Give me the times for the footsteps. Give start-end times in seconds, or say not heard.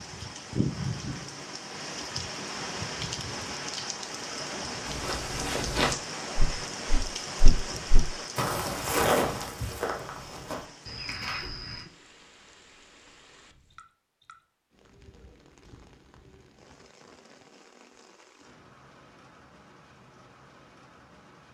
4.8-11.8.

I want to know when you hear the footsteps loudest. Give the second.
9 s.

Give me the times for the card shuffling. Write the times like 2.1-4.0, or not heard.
not heard.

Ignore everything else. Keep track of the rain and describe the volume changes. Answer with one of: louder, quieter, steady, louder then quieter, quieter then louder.
quieter.